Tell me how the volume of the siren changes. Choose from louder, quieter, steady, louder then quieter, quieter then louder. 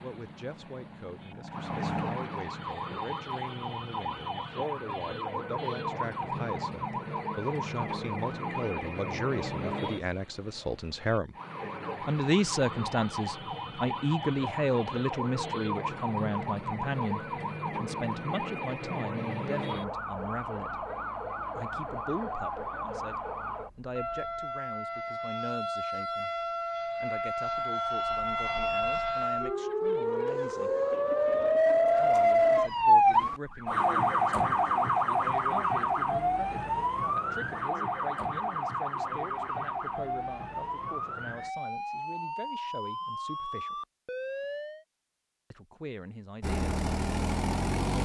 louder then quieter.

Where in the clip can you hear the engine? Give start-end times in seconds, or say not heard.
0.0-2.7, 46.4-48.0.